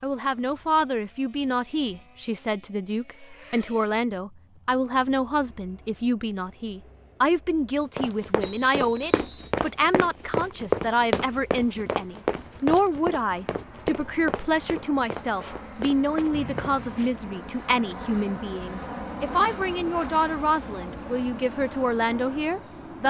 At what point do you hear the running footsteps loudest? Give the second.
11 s.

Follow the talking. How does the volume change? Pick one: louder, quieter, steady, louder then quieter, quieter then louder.
steady.